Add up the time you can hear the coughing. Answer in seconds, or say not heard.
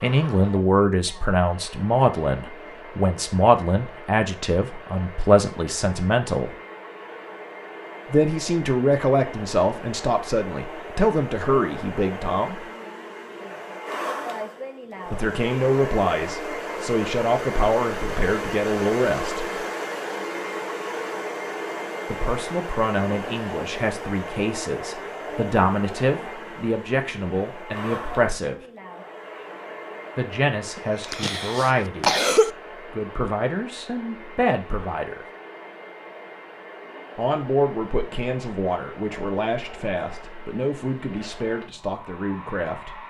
2 s.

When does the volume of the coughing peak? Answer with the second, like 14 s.
32 s.